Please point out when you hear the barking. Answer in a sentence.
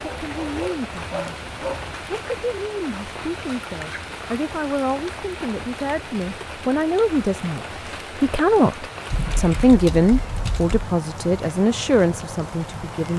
The barking can be heard from 0.0 to 1.9 s.